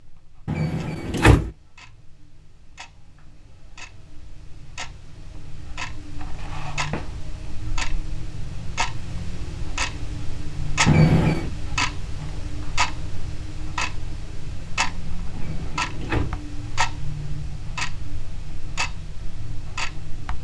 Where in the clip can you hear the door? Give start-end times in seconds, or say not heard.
0.5-1.5, 10.8-11.5, 15.3-16.4.